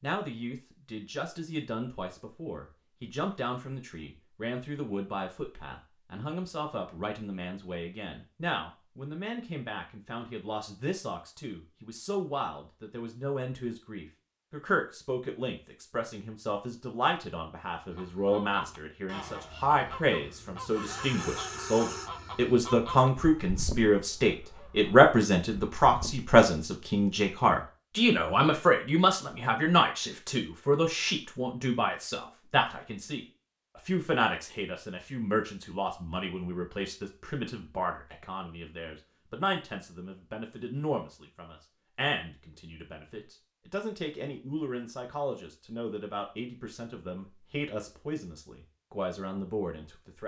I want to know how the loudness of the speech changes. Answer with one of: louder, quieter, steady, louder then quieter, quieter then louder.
louder then quieter.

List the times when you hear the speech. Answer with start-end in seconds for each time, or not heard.
0.0-50.2.